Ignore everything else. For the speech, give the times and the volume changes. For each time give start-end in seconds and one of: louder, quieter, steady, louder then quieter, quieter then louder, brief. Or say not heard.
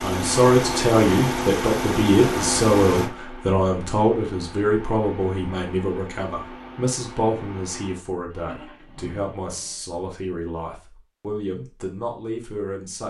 0.0-13.0 quieter.